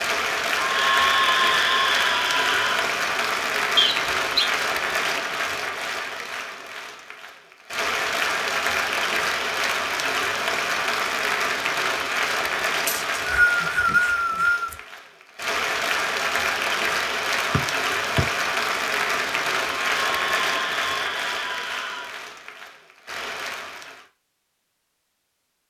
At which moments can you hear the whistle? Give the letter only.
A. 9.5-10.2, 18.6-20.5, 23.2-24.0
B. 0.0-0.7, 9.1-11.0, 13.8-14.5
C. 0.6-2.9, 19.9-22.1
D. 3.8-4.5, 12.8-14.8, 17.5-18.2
D.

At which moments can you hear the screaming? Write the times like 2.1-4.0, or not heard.
0.6-2.9, 19.9-22.1.